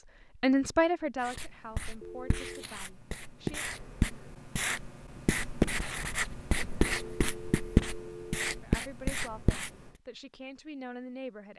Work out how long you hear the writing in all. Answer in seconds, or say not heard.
9 s.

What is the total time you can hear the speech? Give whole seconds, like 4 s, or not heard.
6 s.